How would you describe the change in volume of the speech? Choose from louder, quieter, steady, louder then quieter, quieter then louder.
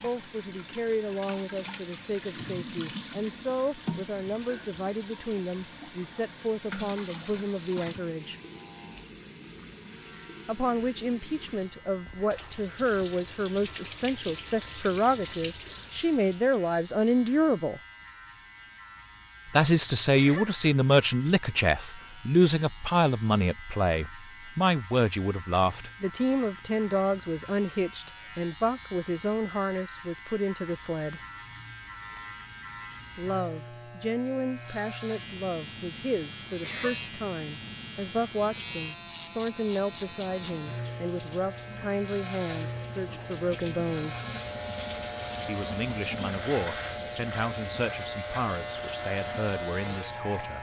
louder then quieter.